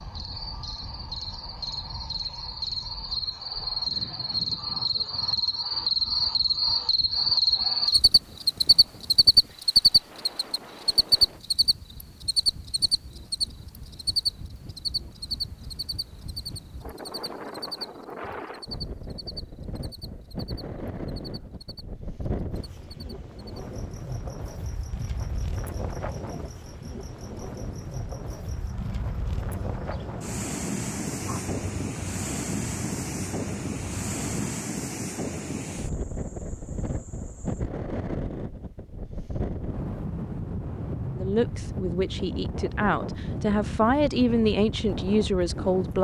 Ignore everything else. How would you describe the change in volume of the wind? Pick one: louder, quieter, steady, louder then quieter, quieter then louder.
louder.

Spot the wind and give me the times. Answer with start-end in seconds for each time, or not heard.
0.0-45.9.